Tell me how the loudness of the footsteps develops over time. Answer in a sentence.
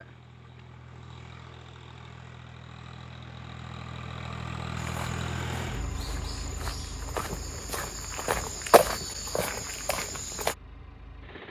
The volume of the footsteps goes up, then down.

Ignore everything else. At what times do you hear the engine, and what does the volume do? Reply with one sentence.
The engine can be heard from 0.0 to 11.4 s, getting louder then quieter.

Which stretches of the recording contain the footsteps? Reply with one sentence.
The footsteps can be heard from 4.8 to 10.6 s.